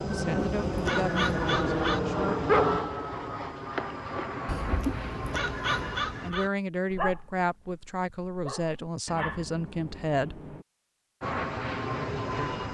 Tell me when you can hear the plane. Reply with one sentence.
The plane can be heard from 0.0 to 6.3 s and from 11.2 to 12.6 s.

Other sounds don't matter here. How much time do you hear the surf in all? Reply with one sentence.
The surf can't be heard in this clip.